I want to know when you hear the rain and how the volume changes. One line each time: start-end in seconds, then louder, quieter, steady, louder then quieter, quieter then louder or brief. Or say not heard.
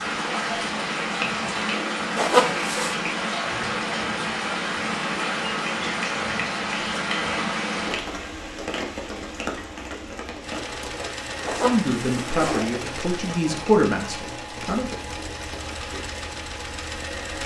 0.0-17.4 quieter.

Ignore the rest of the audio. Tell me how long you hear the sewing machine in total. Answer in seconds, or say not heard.
7 s.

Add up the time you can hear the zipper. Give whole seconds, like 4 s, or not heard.
2 s.